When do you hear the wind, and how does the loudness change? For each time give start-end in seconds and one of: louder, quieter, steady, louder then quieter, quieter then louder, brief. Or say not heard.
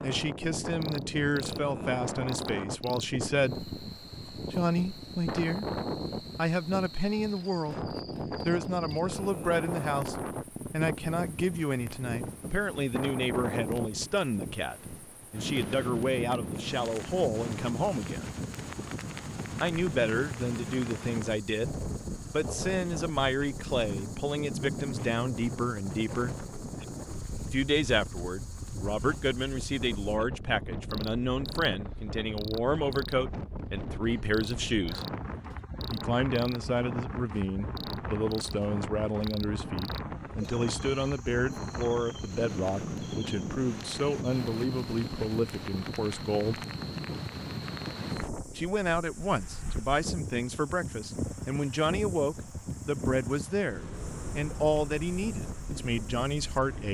0.0-56.8 steady.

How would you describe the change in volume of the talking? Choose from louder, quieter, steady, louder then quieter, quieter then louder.
steady.